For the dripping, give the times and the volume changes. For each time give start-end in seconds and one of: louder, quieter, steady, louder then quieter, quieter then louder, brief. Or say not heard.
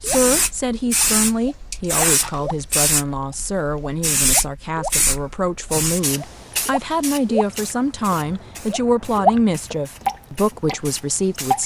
0.0-11.6 louder.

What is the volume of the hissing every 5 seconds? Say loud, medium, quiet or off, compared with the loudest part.
loud, medium, quiet.